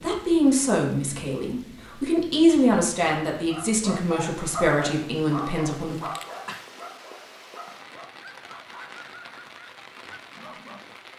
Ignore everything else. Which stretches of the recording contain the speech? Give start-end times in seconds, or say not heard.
0.0-6.0.